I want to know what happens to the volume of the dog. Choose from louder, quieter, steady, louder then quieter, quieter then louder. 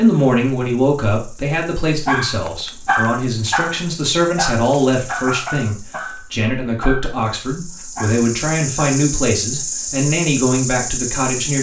quieter.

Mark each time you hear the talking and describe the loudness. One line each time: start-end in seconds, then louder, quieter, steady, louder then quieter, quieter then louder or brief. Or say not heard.
0.0-11.5 steady.